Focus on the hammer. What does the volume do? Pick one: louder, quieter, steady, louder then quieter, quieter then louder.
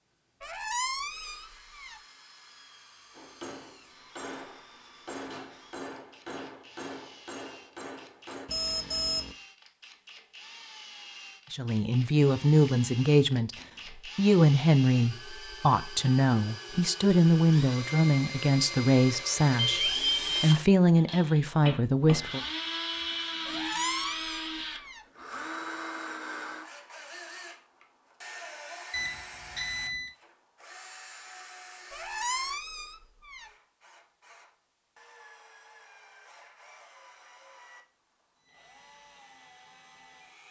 steady.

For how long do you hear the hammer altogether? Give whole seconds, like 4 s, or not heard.
5 s.